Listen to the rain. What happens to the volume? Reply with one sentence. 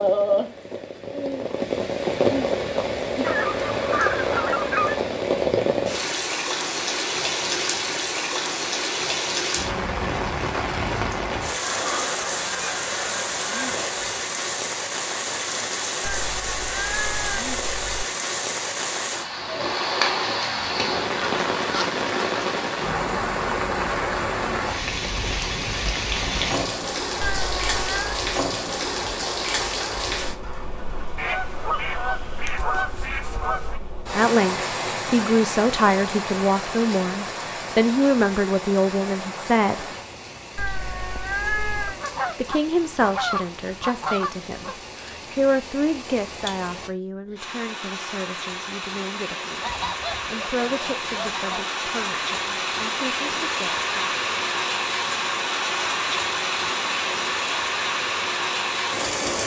The volume of the rain goes down, then up.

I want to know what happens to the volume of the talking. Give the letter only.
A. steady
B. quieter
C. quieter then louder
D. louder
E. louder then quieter
B.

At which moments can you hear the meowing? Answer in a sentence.
You can hear the meowing from 16.0 to 18.1 s, from 27.2 to 28.2 s and from 40.5 to 42.0 s.